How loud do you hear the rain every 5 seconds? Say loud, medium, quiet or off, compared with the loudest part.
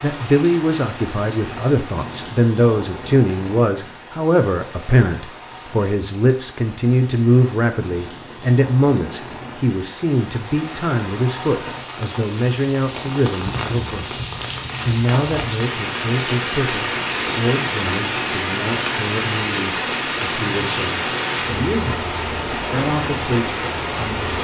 medium, quiet, medium, loud, loud.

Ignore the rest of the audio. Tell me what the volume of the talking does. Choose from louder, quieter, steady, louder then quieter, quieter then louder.
quieter.